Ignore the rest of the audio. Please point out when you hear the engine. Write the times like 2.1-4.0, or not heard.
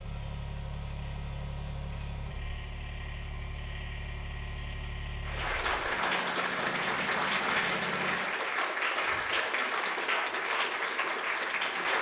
0.0-8.2.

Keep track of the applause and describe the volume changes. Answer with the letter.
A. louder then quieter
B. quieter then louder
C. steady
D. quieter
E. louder
C.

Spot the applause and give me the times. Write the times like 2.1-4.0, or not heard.
5.2-11.9.